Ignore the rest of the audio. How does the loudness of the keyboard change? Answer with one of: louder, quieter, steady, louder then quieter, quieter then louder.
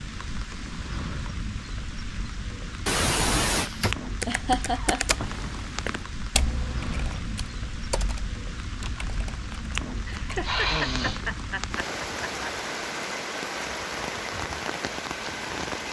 quieter.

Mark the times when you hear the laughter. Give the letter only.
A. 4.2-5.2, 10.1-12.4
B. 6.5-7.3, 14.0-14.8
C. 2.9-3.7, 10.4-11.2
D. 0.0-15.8
A.